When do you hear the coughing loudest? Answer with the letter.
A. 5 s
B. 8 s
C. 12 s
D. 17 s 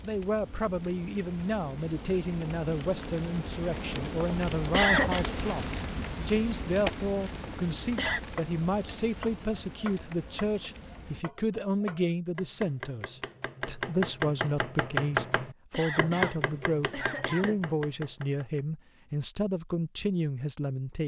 A.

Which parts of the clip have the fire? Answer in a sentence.
The fire can be heard from 0.0 to 11.2 s.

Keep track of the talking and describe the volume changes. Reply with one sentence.
The loudness of the talking stays about the same.